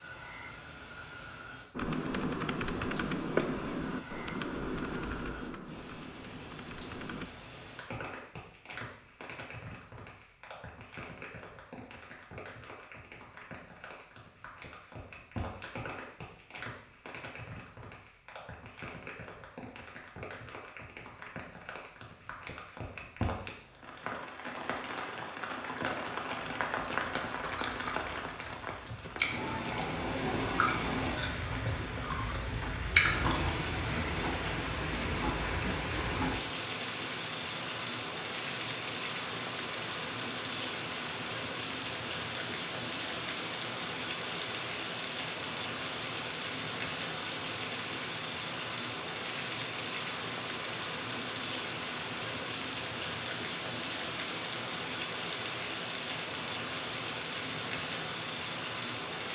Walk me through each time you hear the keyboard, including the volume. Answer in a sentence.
You can hear the keyboard from 1.7 to 7.3 s, getting quieter.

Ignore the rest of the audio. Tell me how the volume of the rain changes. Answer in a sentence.
The loudness of the rain goes up.